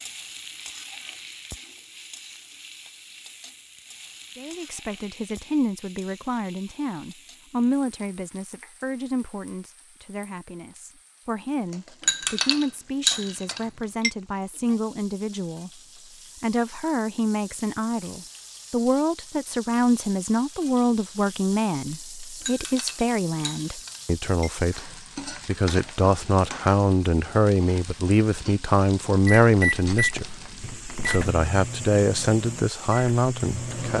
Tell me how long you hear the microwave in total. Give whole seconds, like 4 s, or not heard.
5 s.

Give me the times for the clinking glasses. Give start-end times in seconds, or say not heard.
12.0-14.1, 22.4-24.5.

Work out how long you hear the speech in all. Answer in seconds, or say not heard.
28 s.